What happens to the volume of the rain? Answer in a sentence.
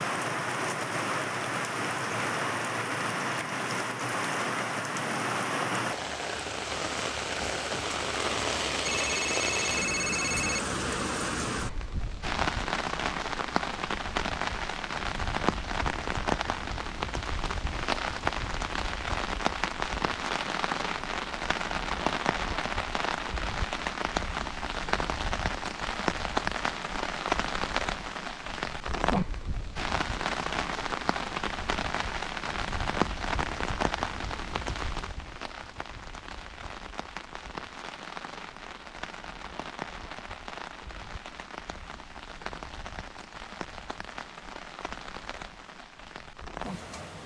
The volume of the rain goes down.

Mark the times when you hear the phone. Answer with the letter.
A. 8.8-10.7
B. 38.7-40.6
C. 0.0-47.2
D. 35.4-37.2
A.